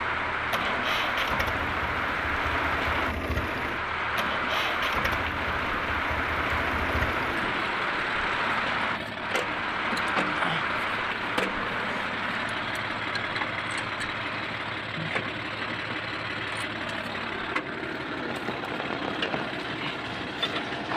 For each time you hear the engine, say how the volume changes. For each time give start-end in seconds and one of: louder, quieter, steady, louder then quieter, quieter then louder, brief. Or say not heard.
0.0-20.9 steady.